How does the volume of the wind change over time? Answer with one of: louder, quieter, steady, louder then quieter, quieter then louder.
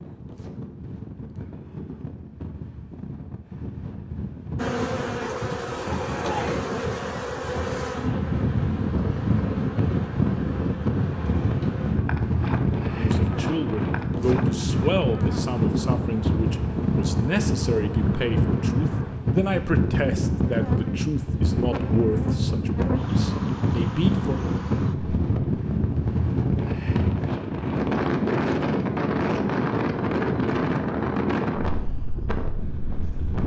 louder.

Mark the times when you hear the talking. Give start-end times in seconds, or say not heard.
12.9-24.4.